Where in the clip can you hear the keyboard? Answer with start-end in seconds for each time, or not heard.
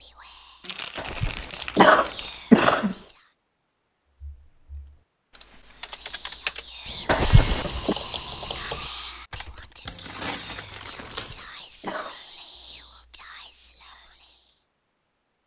4.2-9.8.